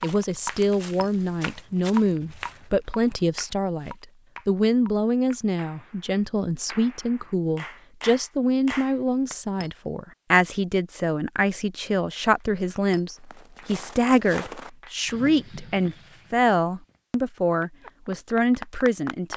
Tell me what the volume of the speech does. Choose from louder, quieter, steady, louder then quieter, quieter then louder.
steady.